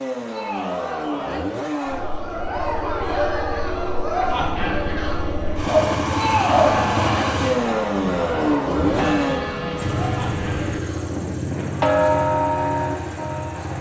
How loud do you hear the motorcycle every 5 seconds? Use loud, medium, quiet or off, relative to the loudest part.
medium, loud, medium.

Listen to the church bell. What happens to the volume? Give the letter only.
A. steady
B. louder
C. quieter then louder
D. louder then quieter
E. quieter
B.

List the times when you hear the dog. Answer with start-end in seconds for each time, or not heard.
5.7-6.8.